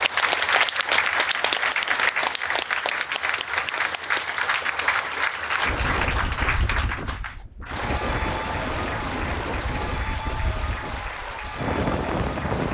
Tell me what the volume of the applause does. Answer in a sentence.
The volume of the applause goes down.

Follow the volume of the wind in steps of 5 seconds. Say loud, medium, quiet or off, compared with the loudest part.
off, loud, loud.